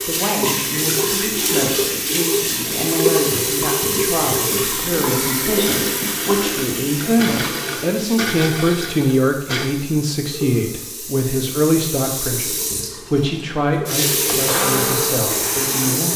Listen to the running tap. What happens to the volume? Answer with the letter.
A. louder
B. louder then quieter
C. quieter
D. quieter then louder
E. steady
D.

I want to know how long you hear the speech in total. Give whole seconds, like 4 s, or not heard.
16 s.